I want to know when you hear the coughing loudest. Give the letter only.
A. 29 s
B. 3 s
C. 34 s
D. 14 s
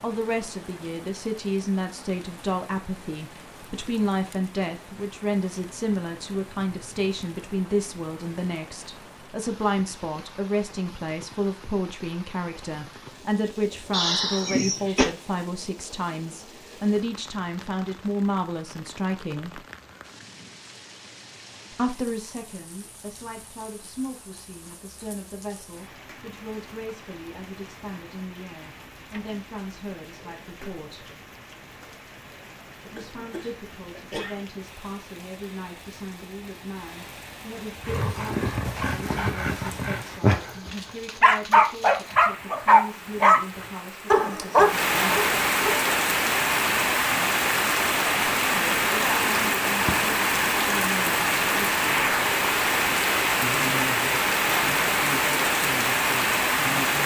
D.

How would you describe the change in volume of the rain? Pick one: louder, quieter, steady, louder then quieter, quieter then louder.
louder.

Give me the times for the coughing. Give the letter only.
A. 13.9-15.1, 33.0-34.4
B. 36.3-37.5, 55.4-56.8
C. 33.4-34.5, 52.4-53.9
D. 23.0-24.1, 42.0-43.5
A.